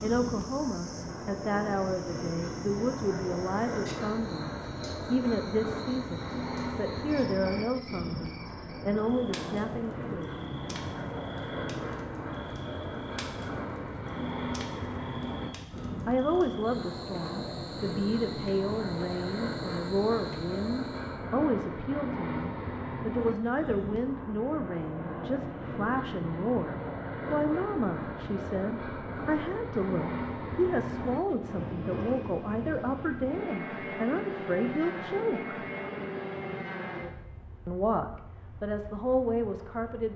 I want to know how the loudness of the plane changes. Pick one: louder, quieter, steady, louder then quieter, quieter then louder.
steady.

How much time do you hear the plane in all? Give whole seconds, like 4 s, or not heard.
40 s.